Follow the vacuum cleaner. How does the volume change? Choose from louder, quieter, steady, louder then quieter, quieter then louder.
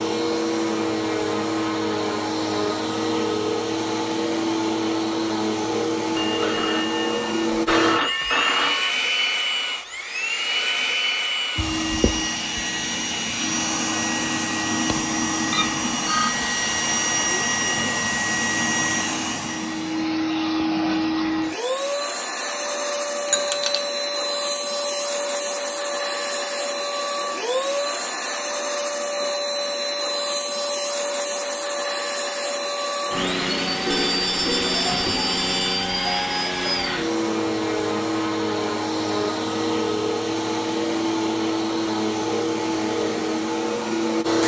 steady.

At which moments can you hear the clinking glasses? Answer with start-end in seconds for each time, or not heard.
23.2-23.9.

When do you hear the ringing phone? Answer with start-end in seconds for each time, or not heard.
6.2-8.9, 15.5-16.4, 33.9-35.7.